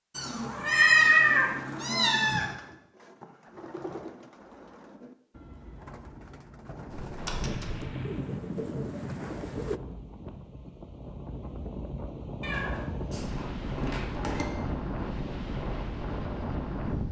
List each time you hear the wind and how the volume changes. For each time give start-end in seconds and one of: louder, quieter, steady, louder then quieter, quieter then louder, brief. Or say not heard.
7.2-17.0 quieter then louder.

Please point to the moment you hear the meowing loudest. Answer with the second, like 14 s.
1 s.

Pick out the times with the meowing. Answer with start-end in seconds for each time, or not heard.
0.1-2.5, 6.9-7.8, 12.4-14.4.